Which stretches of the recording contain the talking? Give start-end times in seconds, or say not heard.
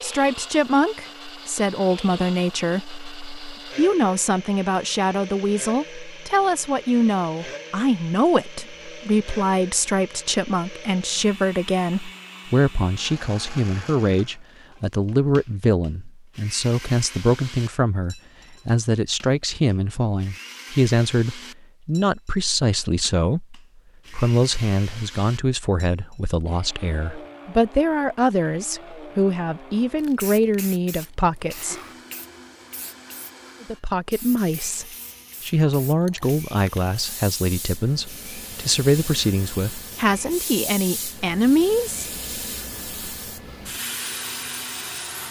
0.0-31.8, 33.6-42.0.